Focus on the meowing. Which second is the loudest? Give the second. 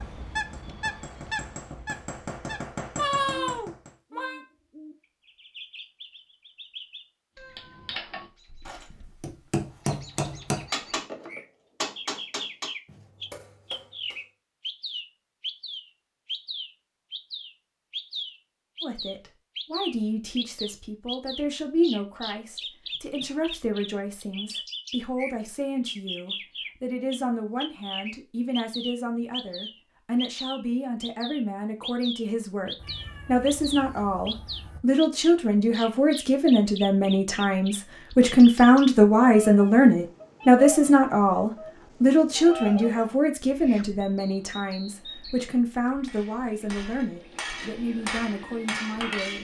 3 s.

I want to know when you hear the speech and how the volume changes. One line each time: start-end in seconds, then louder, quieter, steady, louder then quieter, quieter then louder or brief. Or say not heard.
18.8-49.4 louder then quieter.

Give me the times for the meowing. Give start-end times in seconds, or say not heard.
3.0-4.4, 32.8-34.8.